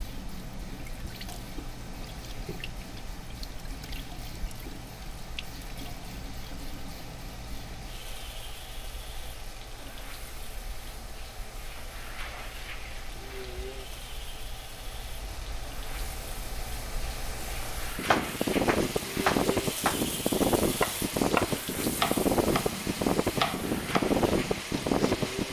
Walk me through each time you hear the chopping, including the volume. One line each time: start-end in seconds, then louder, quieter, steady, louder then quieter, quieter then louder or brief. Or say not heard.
18.1-25.1 quieter.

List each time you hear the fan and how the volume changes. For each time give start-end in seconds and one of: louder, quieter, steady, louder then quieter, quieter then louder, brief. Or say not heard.
0.0-25.4 louder.